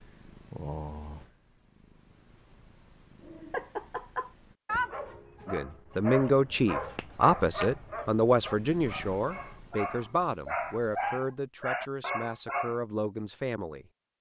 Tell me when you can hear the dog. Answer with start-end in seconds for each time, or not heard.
3.2-12.8.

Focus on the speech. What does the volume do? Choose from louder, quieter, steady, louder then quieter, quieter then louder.
quieter.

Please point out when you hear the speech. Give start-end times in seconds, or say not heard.
5.5-13.8.